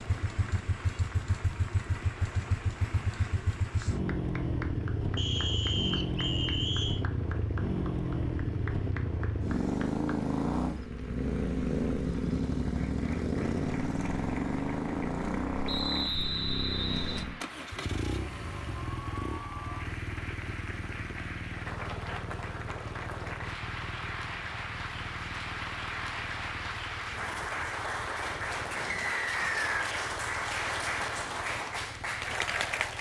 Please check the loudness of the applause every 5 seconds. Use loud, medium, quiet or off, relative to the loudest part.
quiet, quiet, quiet, medium, medium, loud, loud.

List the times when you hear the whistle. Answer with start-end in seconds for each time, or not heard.
5.2-7.0, 15.7-17.2, 28.9-29.9.